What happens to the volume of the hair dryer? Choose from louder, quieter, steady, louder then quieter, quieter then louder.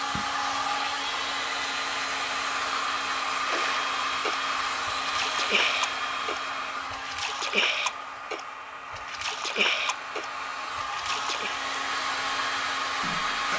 quieter then louder.